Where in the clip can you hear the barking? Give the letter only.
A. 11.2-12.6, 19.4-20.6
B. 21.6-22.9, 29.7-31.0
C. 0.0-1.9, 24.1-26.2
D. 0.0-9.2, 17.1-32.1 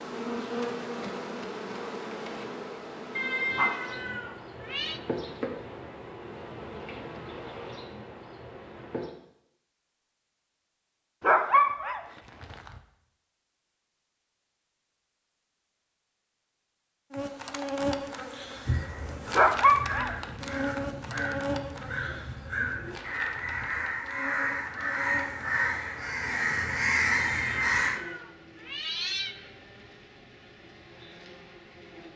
A.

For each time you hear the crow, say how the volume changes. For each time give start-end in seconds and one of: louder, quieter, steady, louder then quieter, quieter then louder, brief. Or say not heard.
18.6-28.0 louder.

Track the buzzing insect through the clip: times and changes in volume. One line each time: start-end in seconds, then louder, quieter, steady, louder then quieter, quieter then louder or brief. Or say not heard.
0.0-9.2 quieter
17.1-32.1 quieter.